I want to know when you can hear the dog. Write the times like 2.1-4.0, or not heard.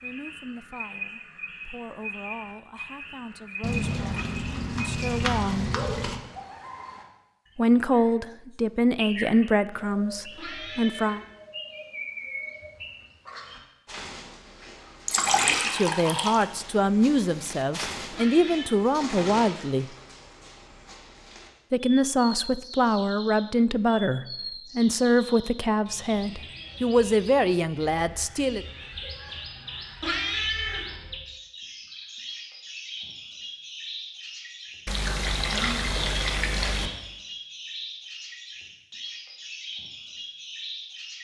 not heard.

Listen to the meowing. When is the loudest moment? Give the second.
30 s.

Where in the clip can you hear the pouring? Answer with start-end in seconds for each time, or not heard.
3.6-6.2, 15.1-16.4, 34.9-36.9.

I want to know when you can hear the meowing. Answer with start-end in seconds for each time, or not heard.
10.3-11.3, 18.1-18.8, 30.0-30.9.